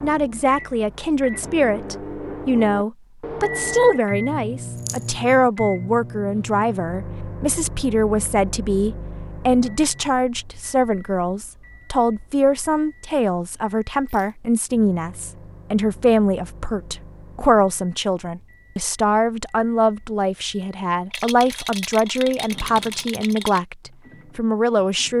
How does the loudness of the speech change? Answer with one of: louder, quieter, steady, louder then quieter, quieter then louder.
steady.